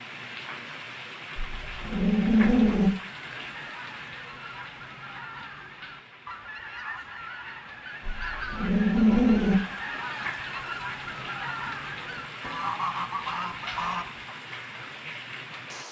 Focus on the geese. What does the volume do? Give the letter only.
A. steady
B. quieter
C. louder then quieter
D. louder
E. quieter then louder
D.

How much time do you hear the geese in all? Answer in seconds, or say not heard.
11 s.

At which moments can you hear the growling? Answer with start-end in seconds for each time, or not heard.
1.4-2.9, 8.1-9.6.